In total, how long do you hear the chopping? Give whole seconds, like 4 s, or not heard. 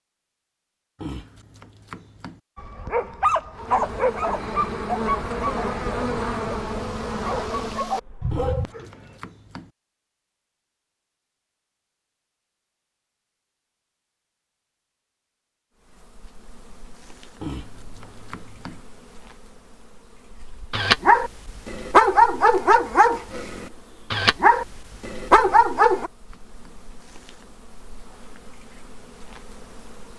6 s.